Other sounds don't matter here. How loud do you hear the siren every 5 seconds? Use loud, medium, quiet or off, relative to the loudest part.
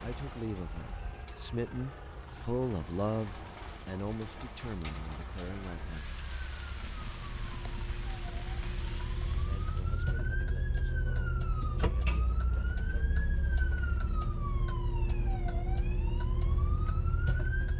quiet, medium, loud, loud.